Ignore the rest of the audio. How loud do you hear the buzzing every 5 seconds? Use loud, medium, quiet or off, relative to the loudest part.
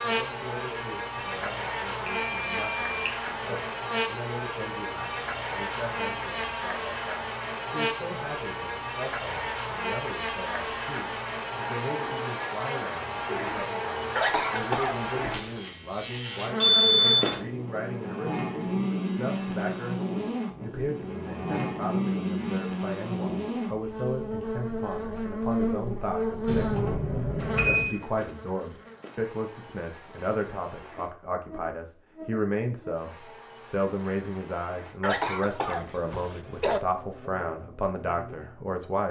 loud, loud, loud, loud, loud, loud, quiet, quiet.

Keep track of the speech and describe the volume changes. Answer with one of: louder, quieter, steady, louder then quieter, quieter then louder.
louder.